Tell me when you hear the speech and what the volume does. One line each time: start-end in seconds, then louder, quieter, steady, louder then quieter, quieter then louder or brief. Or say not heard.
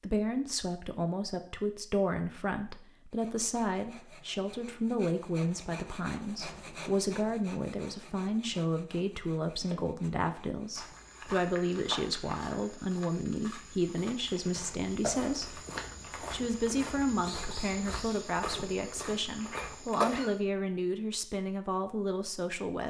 0.0-15.6 steady
16.2-22.8 steady.